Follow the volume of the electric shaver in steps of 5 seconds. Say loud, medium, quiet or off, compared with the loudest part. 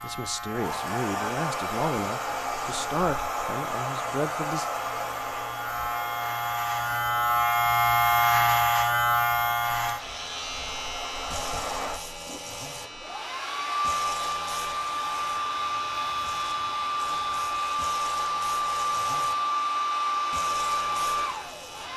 quiet, loud, quiet, quiet, quiet.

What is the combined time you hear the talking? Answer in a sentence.
The talking can be heard for 5 seconds in total.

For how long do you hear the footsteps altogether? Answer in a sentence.
The footsteps can't be heard in this clip.